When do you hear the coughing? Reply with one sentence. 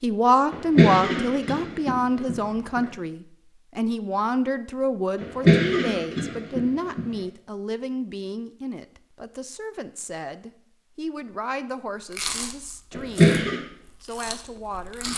The coughing can be heard from 0.5 to 2.8 s, from 5.2 to 7.1 s and from 12.9 to 13.6 s.